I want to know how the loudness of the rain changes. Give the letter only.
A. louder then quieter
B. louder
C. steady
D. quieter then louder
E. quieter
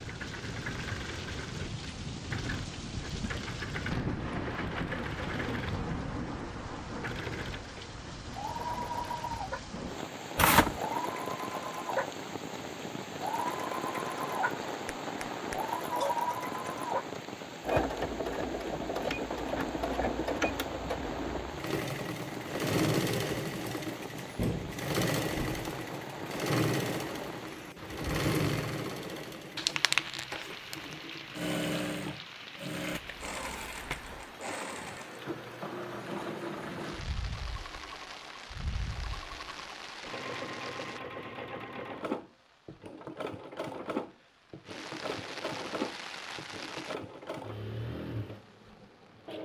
E.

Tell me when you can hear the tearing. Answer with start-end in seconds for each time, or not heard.
10.3-10.8, 29.6-30.2, 32.9-34.2.